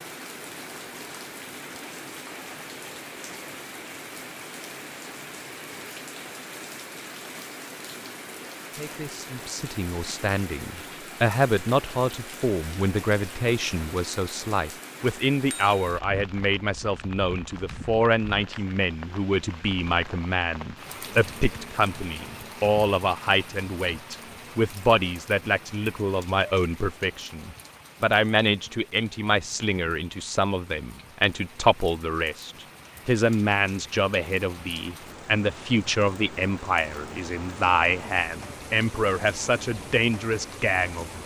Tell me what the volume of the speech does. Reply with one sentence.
The loudness of the speech stays about the same.